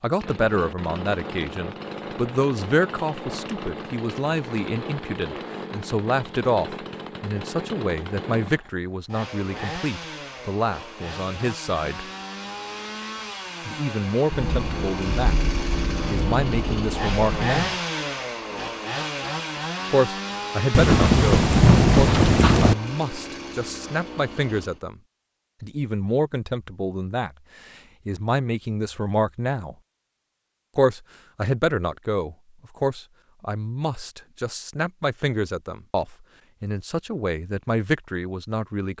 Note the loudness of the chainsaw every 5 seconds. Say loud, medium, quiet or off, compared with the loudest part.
medium, medium, medium, loud, medium, off, off, off.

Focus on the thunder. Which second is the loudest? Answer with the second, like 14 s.
22 s.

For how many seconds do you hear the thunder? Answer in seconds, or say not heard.
5 s.